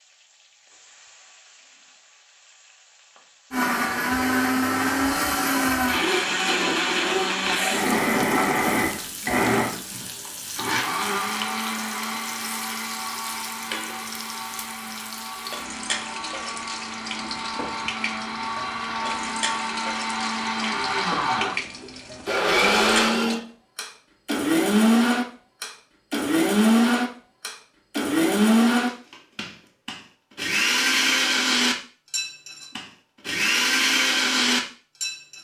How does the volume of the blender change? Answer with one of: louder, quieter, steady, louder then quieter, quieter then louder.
quieter then louder.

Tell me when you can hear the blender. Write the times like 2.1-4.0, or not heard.
3.5-35.3.